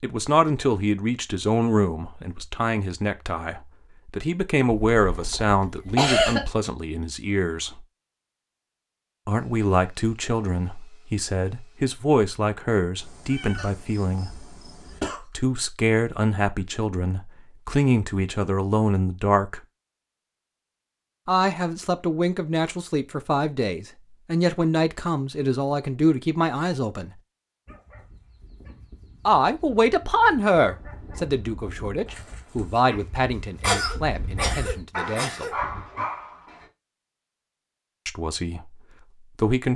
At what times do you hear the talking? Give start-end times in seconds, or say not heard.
0.0-7.8, 9.2-14.5, 15.2-19.6, 21.2-27.1, 29.2-35.5, 38.0-39.7.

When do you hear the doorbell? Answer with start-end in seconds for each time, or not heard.
not heard.